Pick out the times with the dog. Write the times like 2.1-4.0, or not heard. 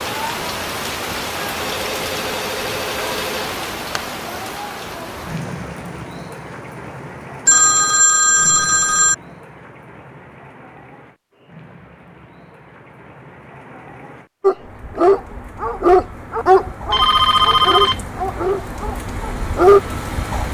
14.4-19.8.